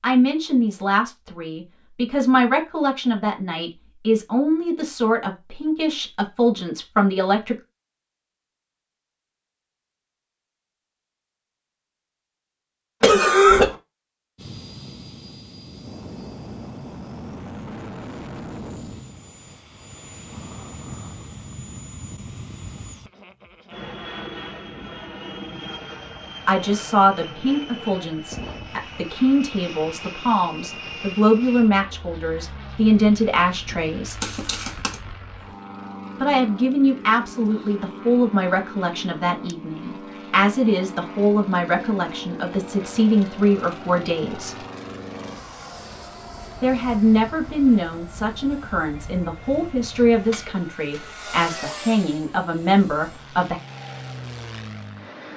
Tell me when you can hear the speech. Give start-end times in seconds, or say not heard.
0.0-7.5, 26.4-34.3, 36.1-44.6, 46.6-53.5.